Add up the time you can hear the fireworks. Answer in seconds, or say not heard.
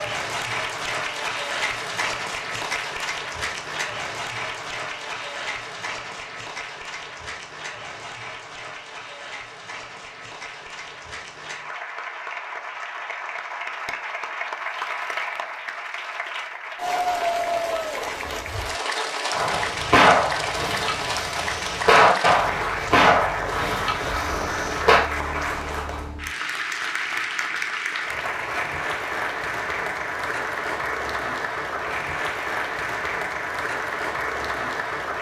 6 s.